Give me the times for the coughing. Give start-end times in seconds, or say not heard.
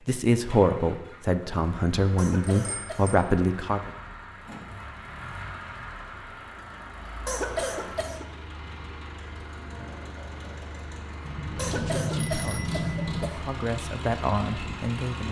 2.1-3.2, 7.2-8.2, 11.6-13.4.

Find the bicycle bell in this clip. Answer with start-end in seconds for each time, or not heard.
2.5-3.0, 11.2-13.2.